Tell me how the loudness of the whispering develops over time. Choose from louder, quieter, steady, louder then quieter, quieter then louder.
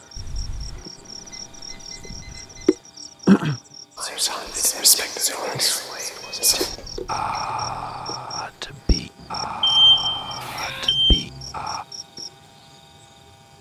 quieter.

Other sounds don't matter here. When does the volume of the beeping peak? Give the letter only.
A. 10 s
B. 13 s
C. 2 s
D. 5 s
A.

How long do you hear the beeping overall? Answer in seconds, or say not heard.
4 s.